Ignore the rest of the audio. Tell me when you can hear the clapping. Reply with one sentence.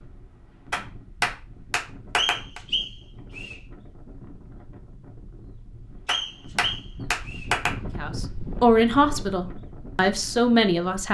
You can hear the clapping from 0.7 to 2.6 s and from 6.0 to 7.8 s.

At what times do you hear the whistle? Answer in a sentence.
You can hear the whistle from 2.1 to 3.5 s and from 6.0 to 7.5 s.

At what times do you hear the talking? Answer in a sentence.
You can hear the talking from 8.0 to 11.0 s.